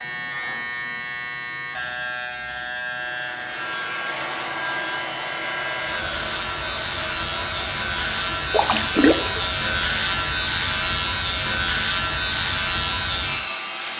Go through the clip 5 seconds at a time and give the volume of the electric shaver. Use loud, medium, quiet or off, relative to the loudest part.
medium, loud, loud.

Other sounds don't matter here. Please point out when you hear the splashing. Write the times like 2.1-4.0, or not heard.
8.5-9.4.